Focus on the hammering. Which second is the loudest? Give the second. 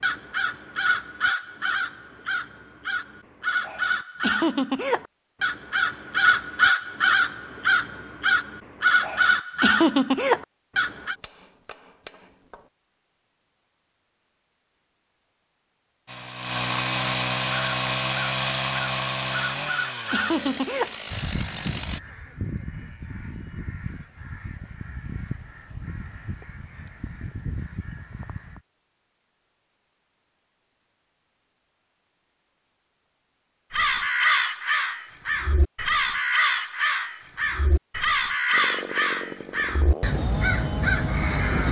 12 s.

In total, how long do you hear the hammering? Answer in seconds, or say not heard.
2 s.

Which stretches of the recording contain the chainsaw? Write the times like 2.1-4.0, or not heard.
16.1-22.0, 38.5-41.5.